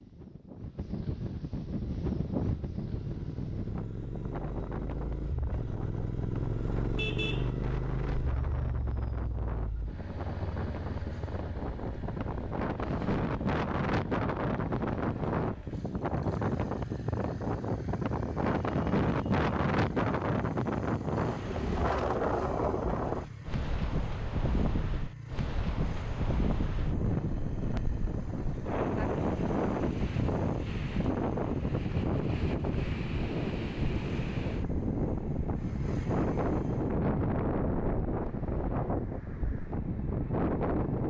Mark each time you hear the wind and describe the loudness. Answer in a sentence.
You can hear the wind from 0.0 to 41.0 s, getting louder.